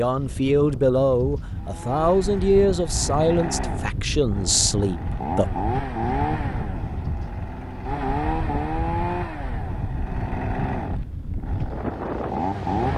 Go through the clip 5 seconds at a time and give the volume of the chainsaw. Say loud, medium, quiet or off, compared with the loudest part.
medium, loud, loud.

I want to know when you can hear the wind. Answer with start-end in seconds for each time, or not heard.
0.0-12.9.